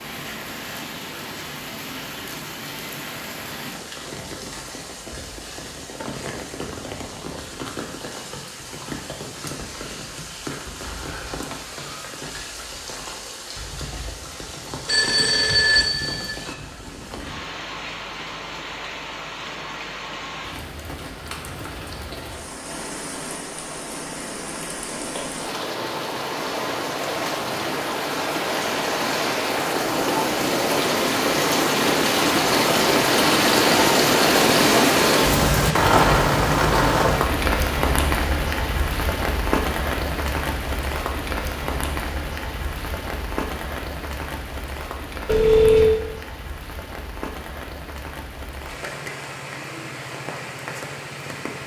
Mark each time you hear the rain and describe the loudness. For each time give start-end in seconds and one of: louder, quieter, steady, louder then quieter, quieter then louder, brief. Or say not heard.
0.0-51.6 louder then quieter.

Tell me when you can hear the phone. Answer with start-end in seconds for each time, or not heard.
14.8-16.4, 45.2-45.9.